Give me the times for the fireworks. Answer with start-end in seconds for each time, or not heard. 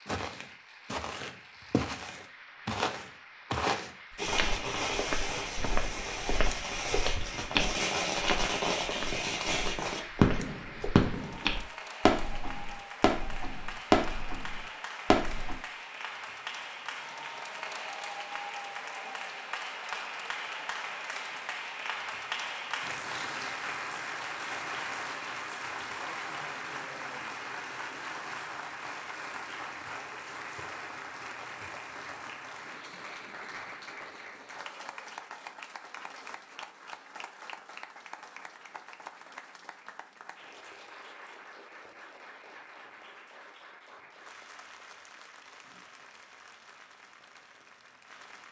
4.2-15.6.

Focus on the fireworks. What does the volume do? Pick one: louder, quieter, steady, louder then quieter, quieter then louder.
louder.